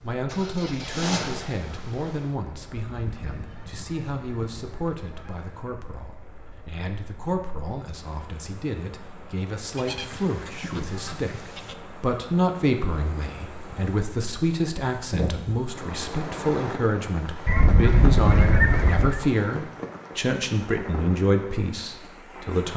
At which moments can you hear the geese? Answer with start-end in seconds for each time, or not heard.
2.8-5.7, 9.8-11.8, 17.4-19.2.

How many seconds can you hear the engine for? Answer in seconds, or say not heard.
2 s.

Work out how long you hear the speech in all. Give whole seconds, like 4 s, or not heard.
23 s.